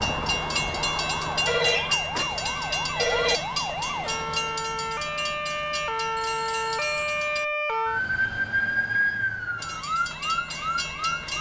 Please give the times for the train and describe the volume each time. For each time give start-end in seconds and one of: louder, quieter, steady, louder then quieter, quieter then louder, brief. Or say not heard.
0.0-7.5 quieter
9.6-11.3 brief.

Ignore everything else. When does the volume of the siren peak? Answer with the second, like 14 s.
9 s.